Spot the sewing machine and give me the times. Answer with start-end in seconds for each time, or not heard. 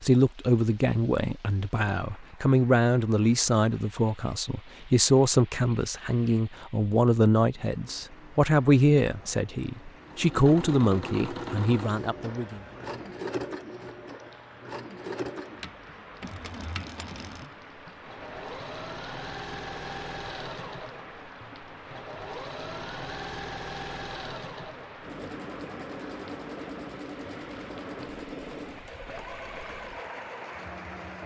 10.1-31.2.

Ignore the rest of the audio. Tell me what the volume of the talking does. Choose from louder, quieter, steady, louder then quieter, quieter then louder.
steady.